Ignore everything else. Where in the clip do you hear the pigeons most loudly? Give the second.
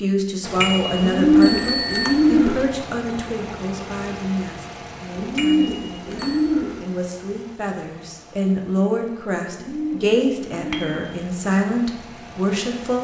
1 s.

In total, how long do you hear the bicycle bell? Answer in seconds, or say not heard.
3 s.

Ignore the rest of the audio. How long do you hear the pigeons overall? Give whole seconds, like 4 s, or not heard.
5 s.